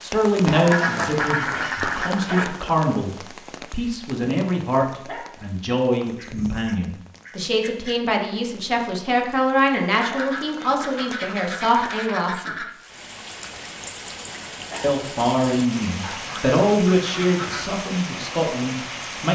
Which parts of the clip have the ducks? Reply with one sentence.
You can hear the ducks from 0.5 to 2.5 s, from 6.0 to 8.0 s, from 10.0 to 12.8 s and from 16.0 to 17.9 s.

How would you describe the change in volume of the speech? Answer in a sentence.
The loudness of the speech stays about the same.